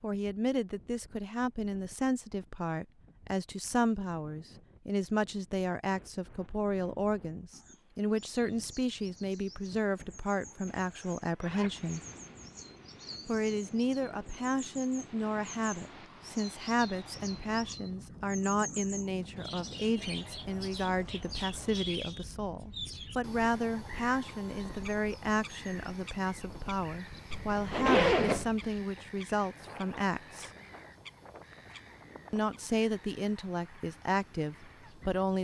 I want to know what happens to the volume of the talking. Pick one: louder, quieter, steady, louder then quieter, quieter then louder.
steady.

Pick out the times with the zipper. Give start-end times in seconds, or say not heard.
10.7-12.3, 27.3-28.6.